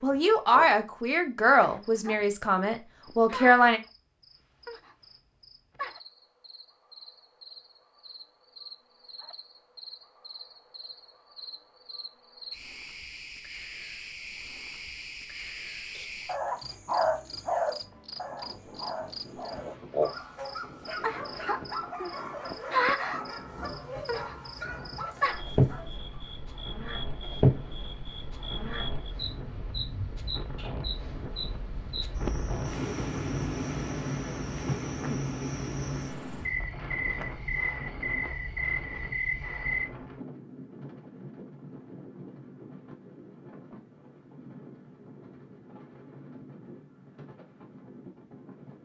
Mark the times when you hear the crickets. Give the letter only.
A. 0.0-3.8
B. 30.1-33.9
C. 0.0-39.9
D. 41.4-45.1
C.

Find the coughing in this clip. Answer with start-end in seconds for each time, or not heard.
not heard.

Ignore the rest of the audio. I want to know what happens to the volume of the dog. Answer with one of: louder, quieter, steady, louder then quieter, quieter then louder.
quieter.